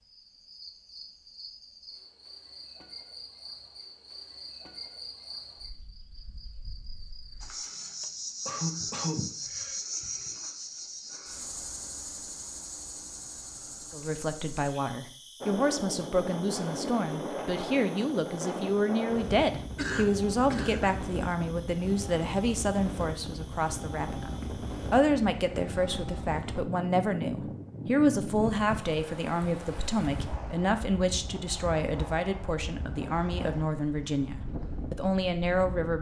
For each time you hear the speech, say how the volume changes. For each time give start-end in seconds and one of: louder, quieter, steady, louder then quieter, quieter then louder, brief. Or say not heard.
13.9-35.9 steady.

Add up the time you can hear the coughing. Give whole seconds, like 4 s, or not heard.
3 s.